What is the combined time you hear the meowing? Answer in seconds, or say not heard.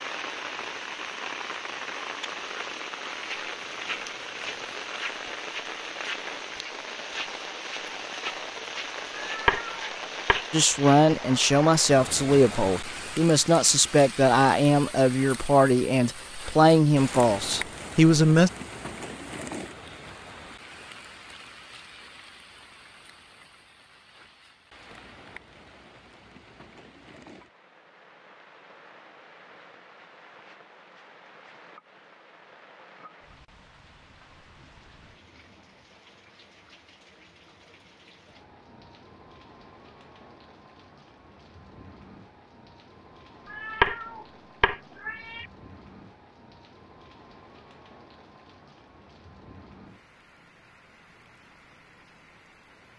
3 s.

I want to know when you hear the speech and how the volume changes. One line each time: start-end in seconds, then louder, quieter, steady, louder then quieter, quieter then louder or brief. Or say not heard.
10.5-18.5 steady.